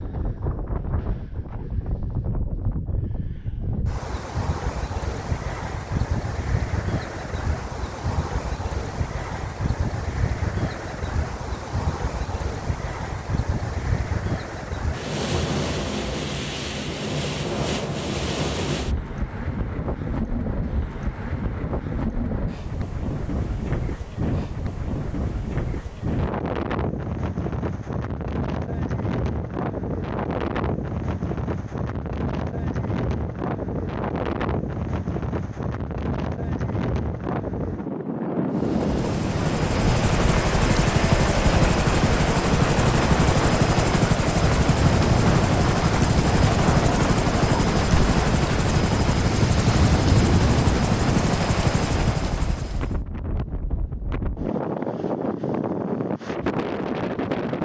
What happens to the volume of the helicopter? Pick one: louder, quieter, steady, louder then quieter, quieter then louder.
steady.